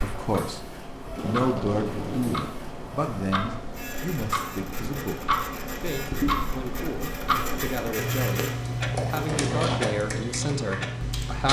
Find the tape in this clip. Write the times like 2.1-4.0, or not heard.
1.1-2.5.